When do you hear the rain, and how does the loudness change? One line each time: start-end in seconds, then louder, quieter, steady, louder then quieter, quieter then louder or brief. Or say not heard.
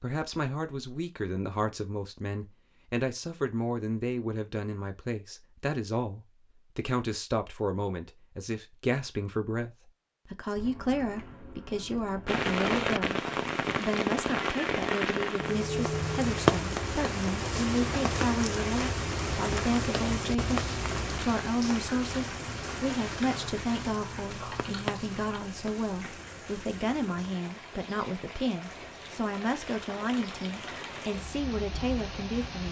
12.2-32.6 quieter.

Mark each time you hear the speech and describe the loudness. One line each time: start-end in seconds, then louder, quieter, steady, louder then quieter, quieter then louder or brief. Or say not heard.
0.0-32.6 steady.